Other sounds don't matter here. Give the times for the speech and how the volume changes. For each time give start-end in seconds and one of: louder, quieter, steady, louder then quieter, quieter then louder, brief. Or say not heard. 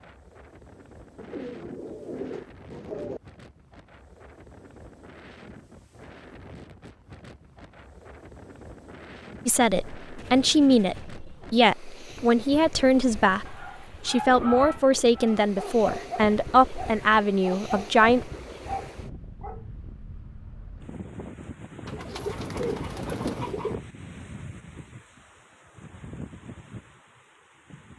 9.4-18.3 steady.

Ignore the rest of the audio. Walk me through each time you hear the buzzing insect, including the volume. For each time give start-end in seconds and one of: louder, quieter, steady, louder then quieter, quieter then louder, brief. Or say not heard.
not heard.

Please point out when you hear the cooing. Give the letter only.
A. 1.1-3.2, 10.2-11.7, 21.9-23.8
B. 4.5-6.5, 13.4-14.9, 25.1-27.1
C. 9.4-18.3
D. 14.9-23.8
A.